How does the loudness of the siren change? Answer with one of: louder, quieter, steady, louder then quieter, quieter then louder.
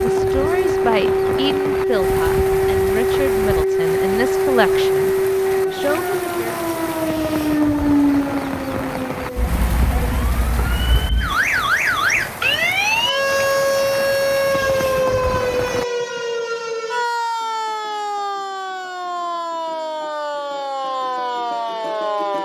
quieter.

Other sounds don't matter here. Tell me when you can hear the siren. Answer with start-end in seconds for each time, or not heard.
0.0-22.4.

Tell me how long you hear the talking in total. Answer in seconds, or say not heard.
7 s.